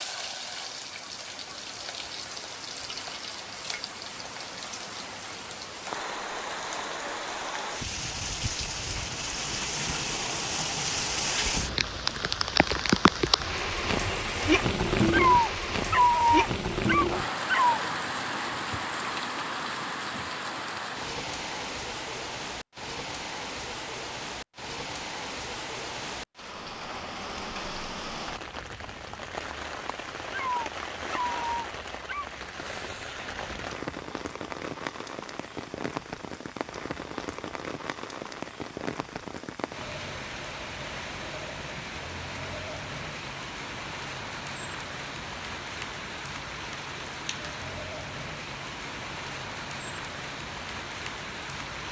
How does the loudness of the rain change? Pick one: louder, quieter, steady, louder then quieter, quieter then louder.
louder then quieter.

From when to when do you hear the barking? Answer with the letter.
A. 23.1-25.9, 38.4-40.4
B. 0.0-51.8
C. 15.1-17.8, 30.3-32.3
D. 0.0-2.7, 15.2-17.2
C.